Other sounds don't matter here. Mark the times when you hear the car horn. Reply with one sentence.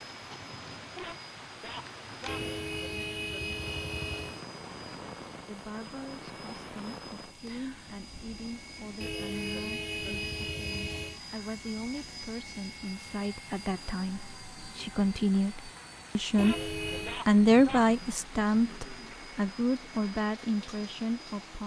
The car horn can be heard from 2.2 to 4.4 s, from 9.0 to 11.2 s and from 16.4 to 17.2 s.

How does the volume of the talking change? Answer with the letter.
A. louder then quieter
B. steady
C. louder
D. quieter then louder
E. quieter
A.